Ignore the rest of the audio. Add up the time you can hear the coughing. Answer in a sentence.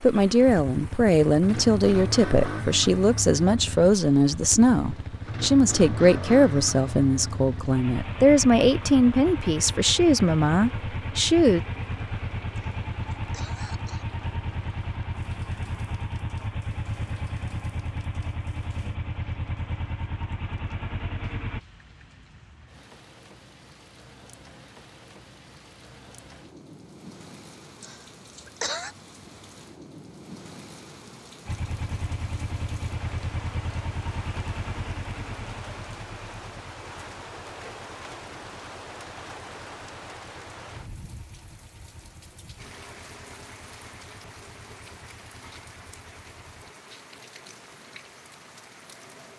You can hear the coughing for 3 seconds altogether.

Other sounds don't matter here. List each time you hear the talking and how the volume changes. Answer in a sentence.
You can hear the talking from 0.0 to 11.6 s, at a steady volume.